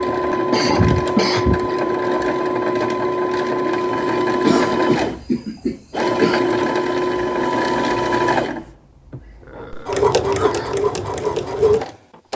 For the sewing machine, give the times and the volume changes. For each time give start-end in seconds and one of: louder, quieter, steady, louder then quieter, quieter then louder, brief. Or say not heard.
0.0-12.3 steady.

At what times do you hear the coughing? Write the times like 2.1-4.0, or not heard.
0.5-1.7, 4.4-6.4, 9.4-10.8.